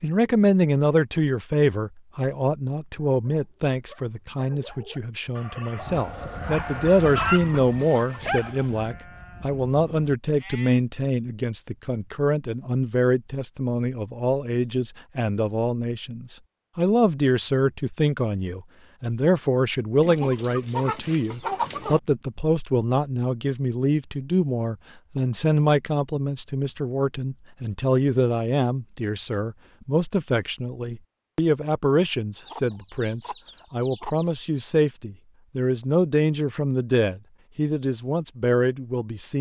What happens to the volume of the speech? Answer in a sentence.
The volume of the speech stays about the same.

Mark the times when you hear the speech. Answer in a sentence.
The speech can be heard from 0.0 to 39.3 s.